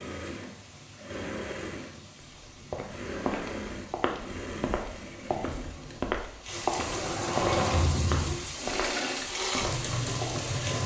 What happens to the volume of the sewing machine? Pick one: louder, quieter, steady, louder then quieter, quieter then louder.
louder.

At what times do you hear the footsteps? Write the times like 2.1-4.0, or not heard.
2.1-10.5.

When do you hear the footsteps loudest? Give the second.
7 s.